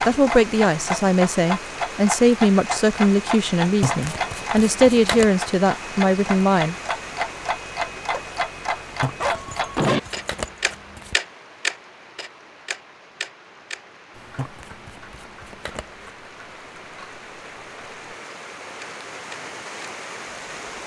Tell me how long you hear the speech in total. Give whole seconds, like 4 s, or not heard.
7 s.